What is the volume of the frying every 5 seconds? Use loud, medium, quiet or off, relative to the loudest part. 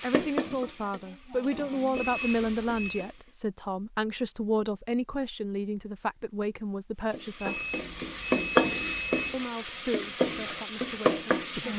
medium, loud, loud.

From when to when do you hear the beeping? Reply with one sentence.
You can hear the beeping from 1.9 to 3.1 s and from 7.3 to 9.3 s.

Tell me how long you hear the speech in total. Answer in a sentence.
You can hear the speech for 10 seconds altogether.